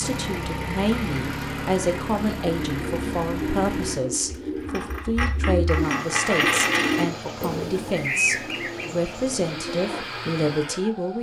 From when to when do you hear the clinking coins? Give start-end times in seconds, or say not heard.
4.7-7.0.